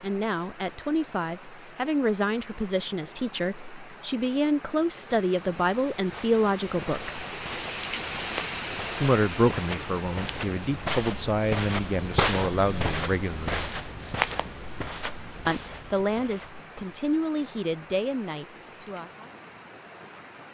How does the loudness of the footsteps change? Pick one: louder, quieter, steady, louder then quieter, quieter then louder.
louder then quieter.